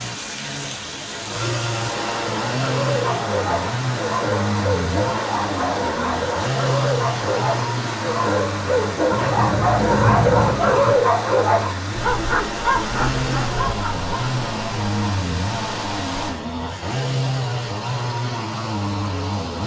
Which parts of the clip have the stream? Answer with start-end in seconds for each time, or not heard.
0.0-16.4.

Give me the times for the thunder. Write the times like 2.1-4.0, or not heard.
9.1-10.9.